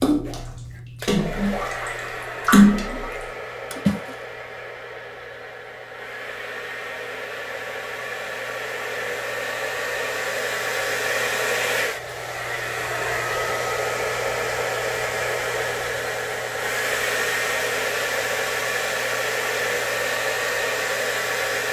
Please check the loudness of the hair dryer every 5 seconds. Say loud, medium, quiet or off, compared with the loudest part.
medium, medium, loud, loud, loud.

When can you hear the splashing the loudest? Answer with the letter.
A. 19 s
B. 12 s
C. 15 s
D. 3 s
D.